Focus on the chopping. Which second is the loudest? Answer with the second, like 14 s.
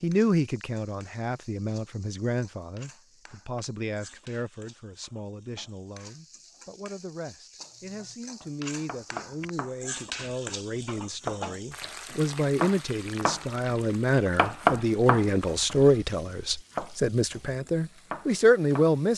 15 s.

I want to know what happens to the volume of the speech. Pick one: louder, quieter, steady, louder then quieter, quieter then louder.
quieter then louder.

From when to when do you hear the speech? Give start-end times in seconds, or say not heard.
0.0-19.1.